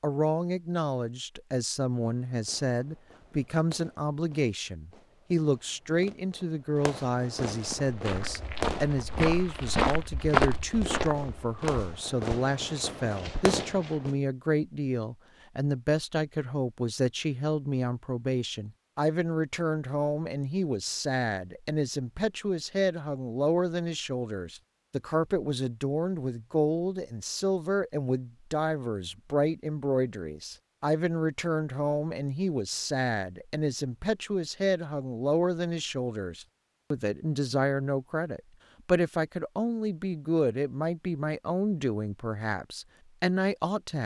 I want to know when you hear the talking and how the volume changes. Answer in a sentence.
The talking can be heard from 0.0 to 44.0 s, at a steady volume.